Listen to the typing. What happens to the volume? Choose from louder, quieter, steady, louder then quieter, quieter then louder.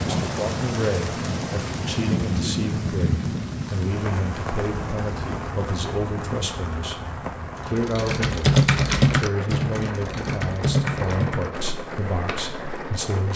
quieter.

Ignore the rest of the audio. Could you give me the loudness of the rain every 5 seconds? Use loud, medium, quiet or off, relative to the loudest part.
loud, medium, medium.